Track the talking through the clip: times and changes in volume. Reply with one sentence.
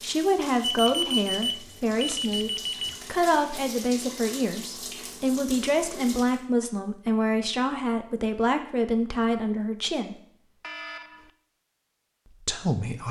The talking can be heard from 0.0 to 10.2 s, at a steady volume; and briefly from 12.3 to 13.0 s.